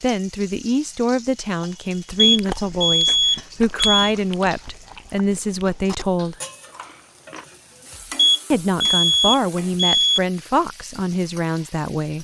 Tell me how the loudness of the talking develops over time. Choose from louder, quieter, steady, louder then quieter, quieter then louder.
steady.